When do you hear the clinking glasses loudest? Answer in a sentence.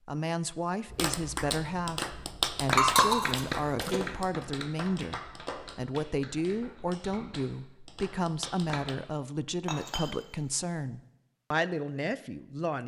The loudest moment of the clinking glasses is at 3 seconds.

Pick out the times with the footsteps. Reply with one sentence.
The footsteps can't be heard in this clip.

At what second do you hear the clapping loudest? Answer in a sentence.
The loudest moment of the clapping is at 3 seconds.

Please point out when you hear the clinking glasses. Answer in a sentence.
The clinking glasses can be heard from 2.8 to 4.0 s and from 9.7 to 10.1 s.